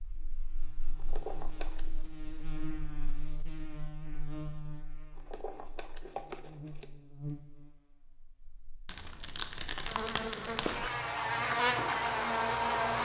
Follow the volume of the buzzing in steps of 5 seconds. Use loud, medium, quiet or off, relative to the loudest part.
quiet, quiet, loud.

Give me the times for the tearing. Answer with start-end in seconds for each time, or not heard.
0.9-1.9, 5.2-6.9, 8.8-10.9.